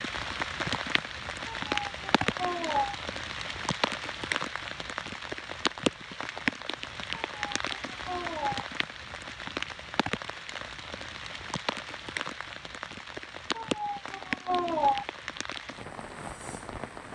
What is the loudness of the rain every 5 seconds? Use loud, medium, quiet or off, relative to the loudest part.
loud, loud, loud, medium.